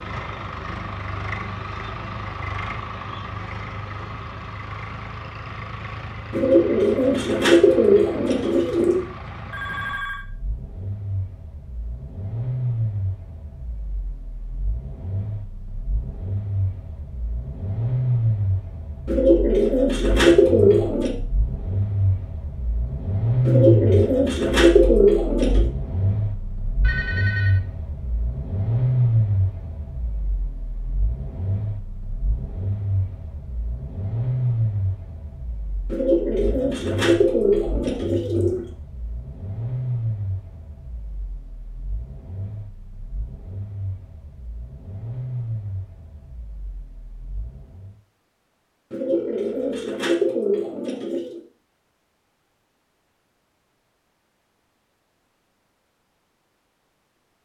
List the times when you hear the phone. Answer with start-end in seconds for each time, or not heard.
9.5-10.2, 26.8-27.6, 49.1-50.0.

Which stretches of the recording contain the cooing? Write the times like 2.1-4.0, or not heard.
6.3-9.1, 19.1-21.1, 23.4-25.7, 35.9-38.6, 48.9-51.4.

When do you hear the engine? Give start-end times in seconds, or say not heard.
0.0-48.0.